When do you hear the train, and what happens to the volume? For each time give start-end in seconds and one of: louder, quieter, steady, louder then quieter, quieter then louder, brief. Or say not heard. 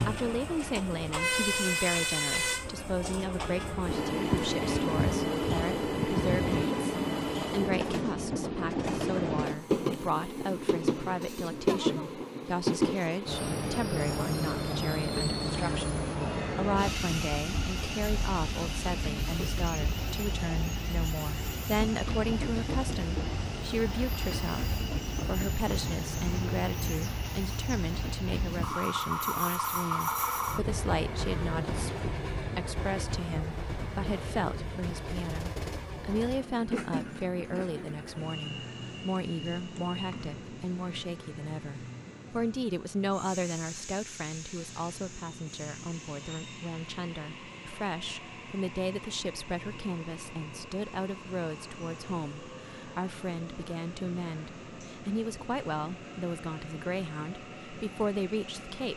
0.0-58.9 quieter.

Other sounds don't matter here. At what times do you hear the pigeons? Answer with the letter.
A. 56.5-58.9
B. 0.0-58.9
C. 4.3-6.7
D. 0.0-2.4
C.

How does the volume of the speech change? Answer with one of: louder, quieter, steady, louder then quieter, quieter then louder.
steady.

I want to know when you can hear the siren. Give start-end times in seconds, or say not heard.
not heard.